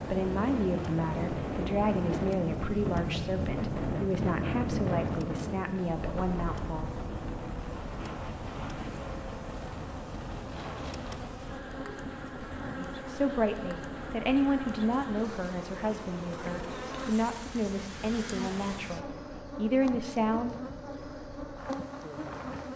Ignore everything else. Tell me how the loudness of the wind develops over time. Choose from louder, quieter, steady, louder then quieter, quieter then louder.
quieter.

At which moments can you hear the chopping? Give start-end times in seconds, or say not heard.
not heard.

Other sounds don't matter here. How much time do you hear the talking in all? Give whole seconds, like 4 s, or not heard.
15 s.